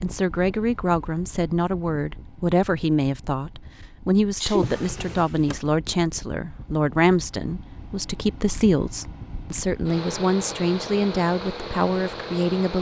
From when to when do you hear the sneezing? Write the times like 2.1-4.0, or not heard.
4.3-4.8.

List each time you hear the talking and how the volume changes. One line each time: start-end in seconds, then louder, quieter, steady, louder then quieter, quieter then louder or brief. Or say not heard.
0.0-12.7 steady.